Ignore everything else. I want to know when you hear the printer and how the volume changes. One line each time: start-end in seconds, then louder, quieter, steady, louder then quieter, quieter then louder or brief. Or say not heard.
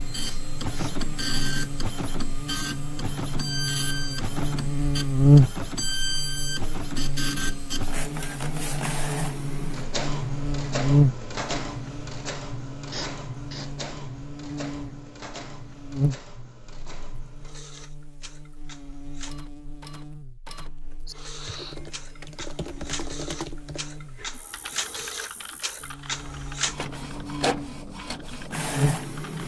0.0-29.4 quieter then louder.